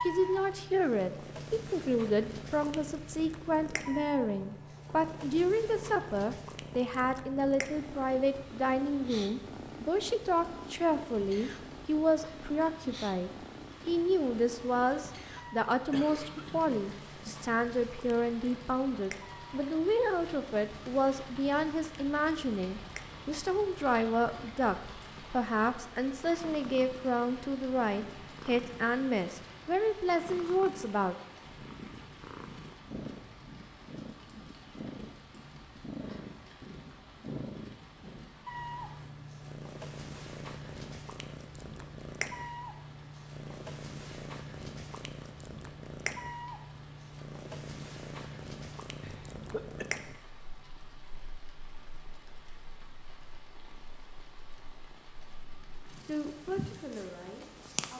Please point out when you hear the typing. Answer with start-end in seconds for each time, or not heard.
not heard.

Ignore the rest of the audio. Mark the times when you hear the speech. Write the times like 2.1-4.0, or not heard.
0.0-31.1, 56.0-57.9.